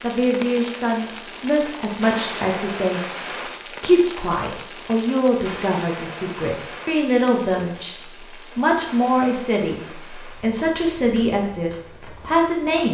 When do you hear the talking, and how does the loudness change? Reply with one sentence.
The talking can be heard from 0.0 to 12.8 s, at a steady volume.